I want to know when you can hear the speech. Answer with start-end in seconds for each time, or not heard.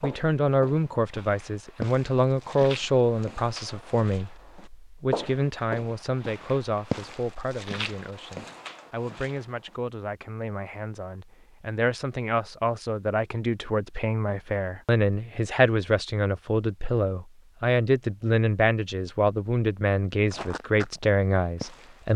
0.0-22.1.